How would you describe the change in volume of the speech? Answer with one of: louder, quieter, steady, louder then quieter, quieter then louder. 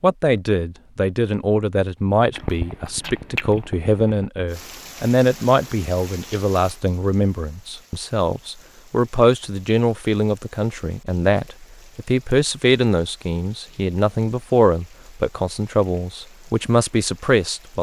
steady.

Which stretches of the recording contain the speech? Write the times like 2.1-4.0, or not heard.
0.0-17.7.